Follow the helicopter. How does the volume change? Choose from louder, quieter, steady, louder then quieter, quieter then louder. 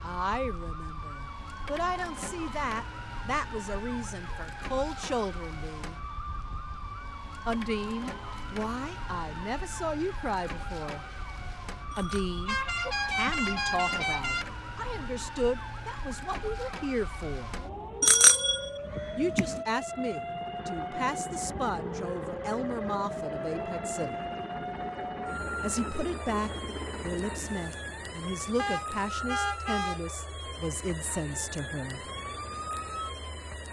steady.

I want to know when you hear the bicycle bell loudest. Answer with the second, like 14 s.
18 s.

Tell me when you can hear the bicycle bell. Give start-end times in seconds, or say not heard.
11.9-13.6, 18.0-19.5.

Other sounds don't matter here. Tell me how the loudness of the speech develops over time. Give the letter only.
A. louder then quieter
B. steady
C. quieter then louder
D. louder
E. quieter
B.